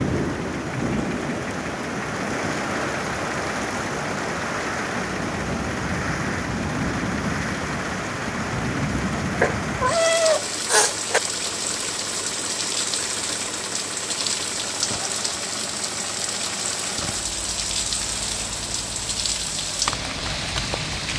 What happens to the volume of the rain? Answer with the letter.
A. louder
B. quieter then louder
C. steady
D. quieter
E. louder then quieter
C.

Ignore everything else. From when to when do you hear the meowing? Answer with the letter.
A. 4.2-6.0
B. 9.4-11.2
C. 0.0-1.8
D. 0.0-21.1
B.